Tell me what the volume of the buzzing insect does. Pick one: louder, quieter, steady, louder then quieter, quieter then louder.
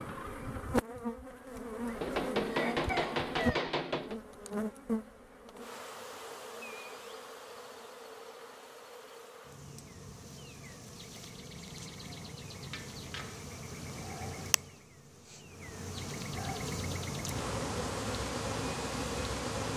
quieter then louder.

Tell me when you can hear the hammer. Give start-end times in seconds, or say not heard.
2.0-4.2, 12.7-13.4.